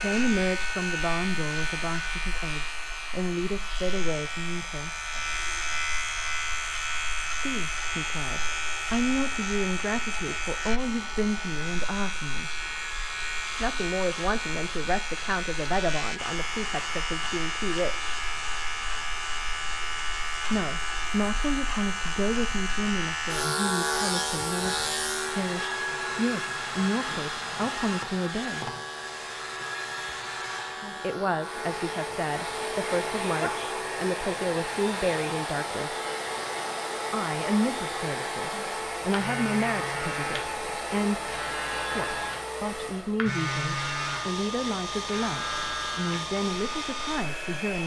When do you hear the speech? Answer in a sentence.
You can hear the speech from 0.0 to 4.9 s, from 7.3 to 12.5 s, from 13.6 to 18.1 s, from 20.5 to 28.7 s, from 31.0 to 36.0 s and from 37.1 to 47.8 s.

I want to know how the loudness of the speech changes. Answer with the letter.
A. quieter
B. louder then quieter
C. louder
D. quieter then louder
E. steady
E.